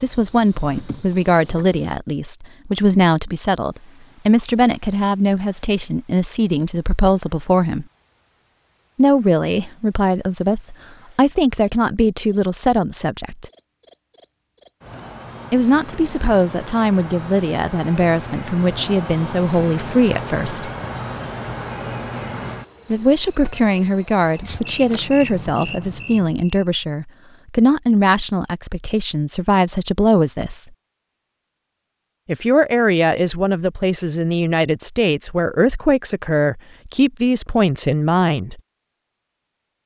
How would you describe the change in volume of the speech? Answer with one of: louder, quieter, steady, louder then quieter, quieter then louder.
steady.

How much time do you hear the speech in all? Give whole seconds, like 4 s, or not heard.
32 s.